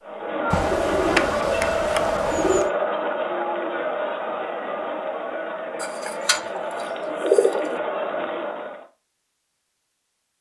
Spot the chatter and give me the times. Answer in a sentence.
You can hear the chatter from 0.0 to 8.8 s.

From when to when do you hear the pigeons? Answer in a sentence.
The pigeons can be heard from 0.5 to 2.7 s and from 5.8 to 7.8 s.